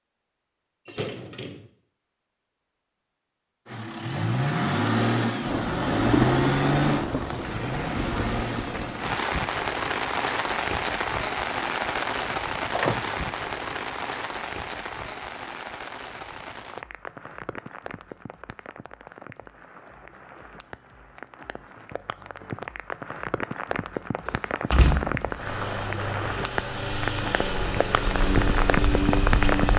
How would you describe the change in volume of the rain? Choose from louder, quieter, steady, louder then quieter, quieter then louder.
quieter then louder.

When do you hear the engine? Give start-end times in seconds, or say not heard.
3.6-9.2, 25.4-29.7.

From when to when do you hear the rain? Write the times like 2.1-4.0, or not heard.
5.4-29.7.